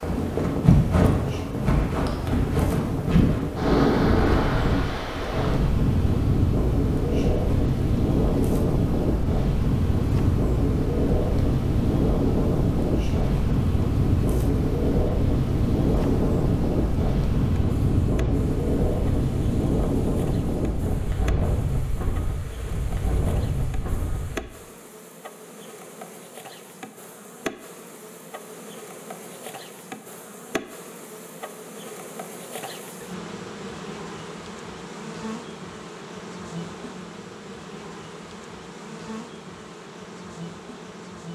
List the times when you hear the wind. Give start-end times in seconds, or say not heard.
0.0-24.4.